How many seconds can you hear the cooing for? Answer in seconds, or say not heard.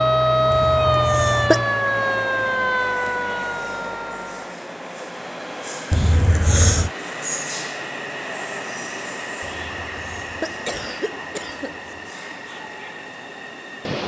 not heard.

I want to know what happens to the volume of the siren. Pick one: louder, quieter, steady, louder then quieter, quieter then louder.
quieter.